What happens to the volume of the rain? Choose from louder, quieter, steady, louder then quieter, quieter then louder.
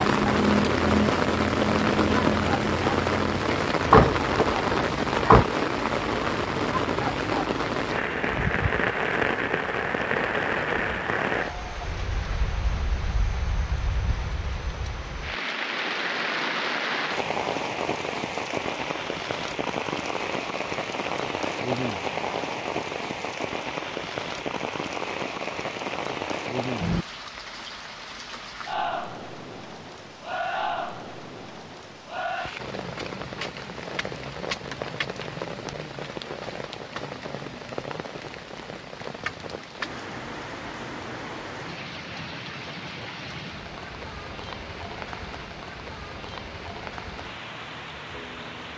quieter.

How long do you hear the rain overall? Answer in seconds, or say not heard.
49 s.